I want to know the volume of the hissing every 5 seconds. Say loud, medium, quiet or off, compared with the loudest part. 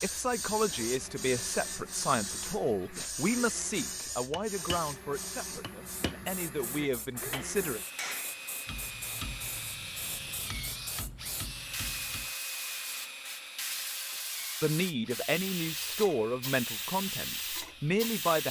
loud, medium, loud, loud.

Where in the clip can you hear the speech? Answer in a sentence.
The speech can be heard from 0.0 to 7.8 s and from 14.6 to 18.4 s.